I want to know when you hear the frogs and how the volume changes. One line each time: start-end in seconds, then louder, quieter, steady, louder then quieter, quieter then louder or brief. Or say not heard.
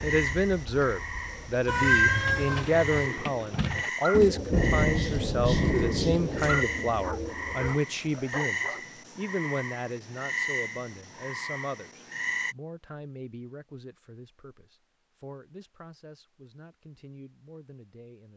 0.0-12.6 steady.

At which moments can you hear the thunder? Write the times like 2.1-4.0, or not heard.
4.5-6.5.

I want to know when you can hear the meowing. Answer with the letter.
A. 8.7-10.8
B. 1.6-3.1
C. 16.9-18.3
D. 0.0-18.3
B.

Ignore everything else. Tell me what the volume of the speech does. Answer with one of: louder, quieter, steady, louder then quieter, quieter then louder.
quieter.